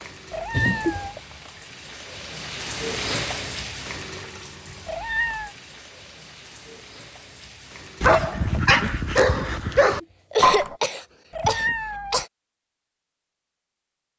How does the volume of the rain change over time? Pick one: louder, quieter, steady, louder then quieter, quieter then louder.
louder then quieter.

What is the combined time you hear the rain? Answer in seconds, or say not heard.
8 s.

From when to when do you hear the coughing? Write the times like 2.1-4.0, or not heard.
0.5-1.2, 9.7-12.2.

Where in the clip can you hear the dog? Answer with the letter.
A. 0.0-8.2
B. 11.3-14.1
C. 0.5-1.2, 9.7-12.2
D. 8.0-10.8
D.